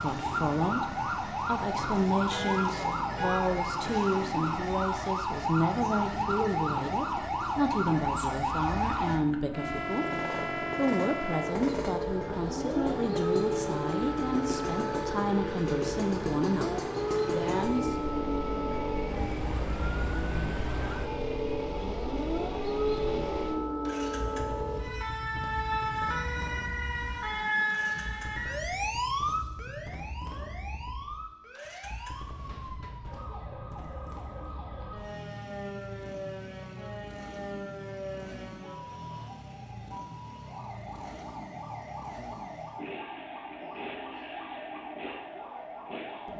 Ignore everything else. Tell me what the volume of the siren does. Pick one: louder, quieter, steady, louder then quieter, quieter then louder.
quieter.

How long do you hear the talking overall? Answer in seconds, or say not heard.
18 s.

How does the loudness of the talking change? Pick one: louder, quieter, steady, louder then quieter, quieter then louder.
steady.